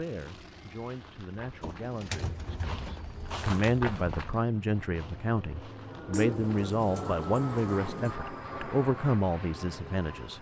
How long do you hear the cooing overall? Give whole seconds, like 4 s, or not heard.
4 s.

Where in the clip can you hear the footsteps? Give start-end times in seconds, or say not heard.
0.2-6.8.